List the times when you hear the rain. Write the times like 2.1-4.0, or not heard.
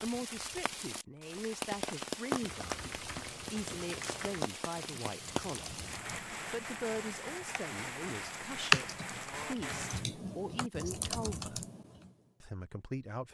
0.0-10.1.